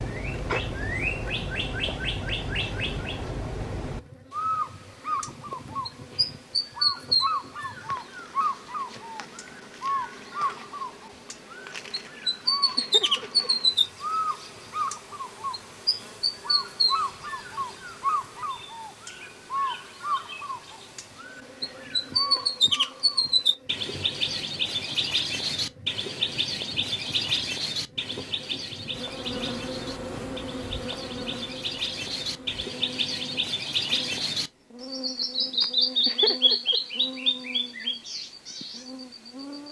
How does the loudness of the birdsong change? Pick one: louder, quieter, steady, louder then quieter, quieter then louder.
steady.